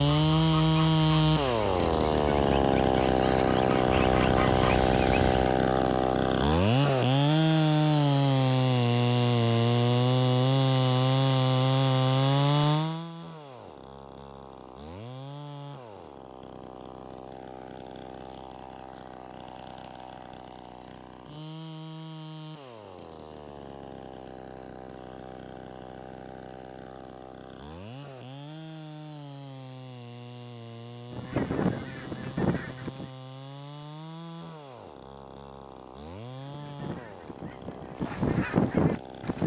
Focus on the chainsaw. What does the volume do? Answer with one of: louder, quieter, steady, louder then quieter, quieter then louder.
quieter.